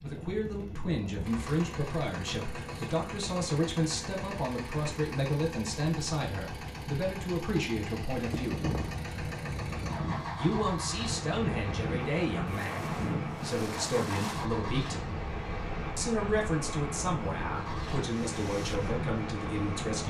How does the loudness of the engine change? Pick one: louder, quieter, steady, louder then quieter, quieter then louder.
steady.